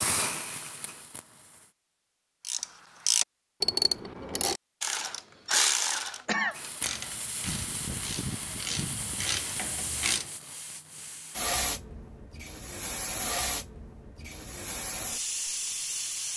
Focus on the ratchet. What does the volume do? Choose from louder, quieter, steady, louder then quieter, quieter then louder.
quieter then louder.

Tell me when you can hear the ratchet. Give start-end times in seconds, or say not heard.
2.4-10.3.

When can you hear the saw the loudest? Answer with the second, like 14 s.
8 s.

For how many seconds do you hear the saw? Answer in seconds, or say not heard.
2 s.